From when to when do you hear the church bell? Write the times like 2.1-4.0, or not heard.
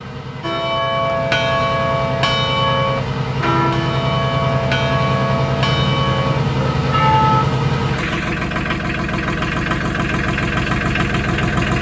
0.4-7.5.